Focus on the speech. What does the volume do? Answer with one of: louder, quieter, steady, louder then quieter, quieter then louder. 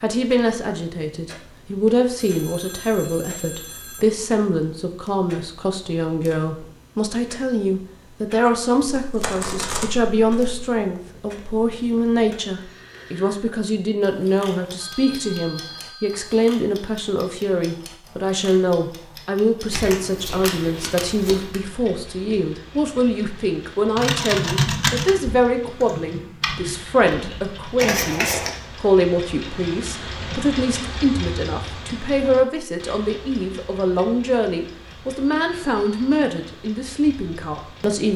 steady.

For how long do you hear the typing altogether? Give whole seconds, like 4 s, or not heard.
4 s.